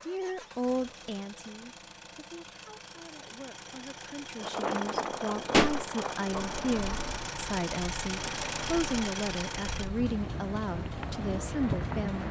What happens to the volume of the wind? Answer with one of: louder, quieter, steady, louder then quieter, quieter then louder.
quieter then louder.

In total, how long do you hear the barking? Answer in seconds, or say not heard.
not heard.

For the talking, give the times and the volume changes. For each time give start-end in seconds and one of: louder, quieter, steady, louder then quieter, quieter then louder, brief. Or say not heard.
0.0-12.2 quieter then louder.